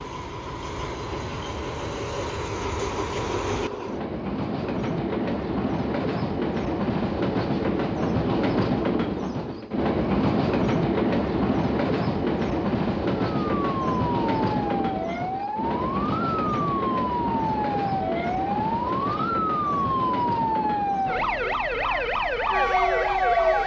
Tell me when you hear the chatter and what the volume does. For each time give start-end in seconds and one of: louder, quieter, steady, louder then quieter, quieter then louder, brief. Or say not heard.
not heard.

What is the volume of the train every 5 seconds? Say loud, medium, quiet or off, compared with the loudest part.
medium, loud, loud, medium, medium.